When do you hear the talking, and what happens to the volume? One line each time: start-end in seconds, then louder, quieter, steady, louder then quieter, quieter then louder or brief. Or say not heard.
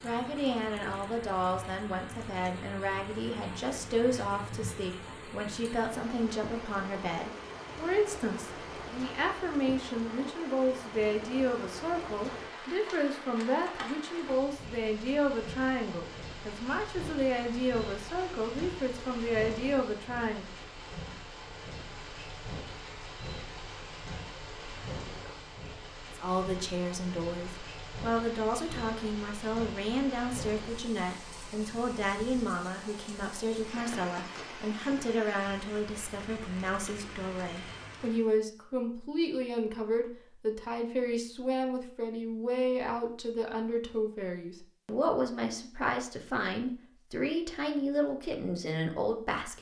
0.0-20.6 steady
26.1-49.5 steady.